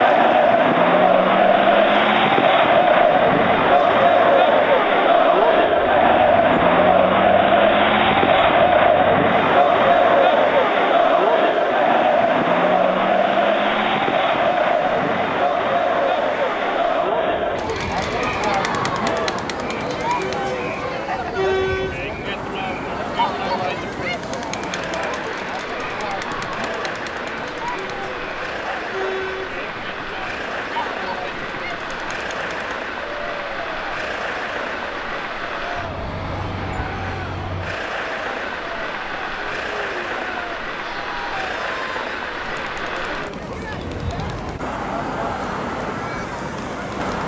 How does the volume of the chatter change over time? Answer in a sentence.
The loudness of the chatter goes down.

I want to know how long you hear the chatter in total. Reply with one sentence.
The chatter can be heard for 47 seconds in total.